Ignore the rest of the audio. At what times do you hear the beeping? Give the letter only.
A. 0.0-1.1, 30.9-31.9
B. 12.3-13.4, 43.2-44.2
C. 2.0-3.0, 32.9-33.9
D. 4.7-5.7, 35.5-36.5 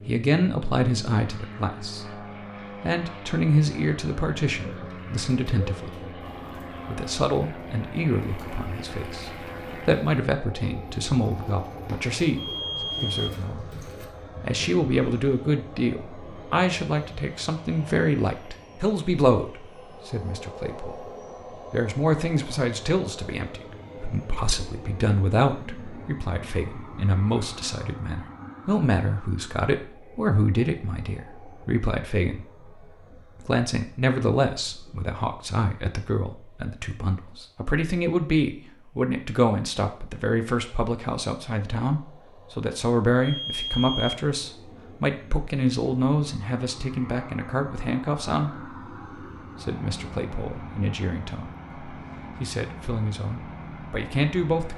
B.